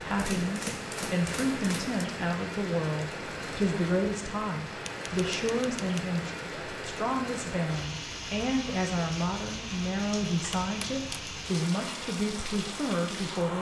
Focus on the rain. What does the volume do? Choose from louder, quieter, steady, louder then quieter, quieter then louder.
steady.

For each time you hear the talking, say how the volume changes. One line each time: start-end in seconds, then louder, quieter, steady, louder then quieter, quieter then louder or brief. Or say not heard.
0.0-13.5 steady.